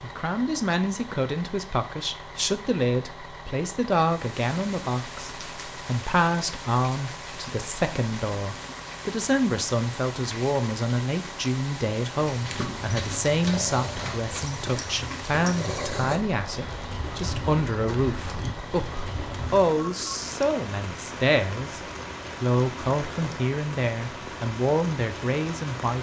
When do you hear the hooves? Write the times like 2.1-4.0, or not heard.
12.3-19.7.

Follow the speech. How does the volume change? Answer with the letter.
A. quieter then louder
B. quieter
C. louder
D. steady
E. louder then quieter
D.